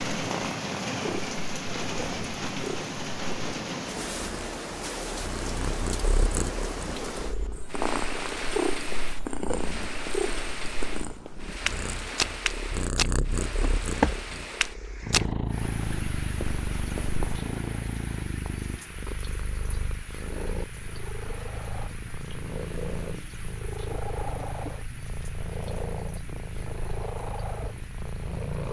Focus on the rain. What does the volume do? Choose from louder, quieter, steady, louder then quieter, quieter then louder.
quieter.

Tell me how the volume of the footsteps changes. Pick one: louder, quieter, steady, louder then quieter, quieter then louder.
louder then quieter.